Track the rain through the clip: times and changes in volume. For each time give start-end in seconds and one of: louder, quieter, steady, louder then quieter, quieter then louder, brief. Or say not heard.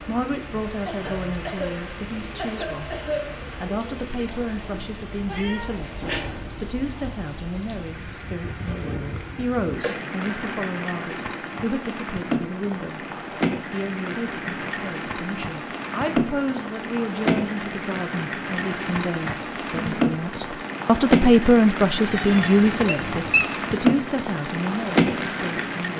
0.0-25.9 louder.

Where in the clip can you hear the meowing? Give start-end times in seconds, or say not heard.
5.2-6.3, 22.1-23.4.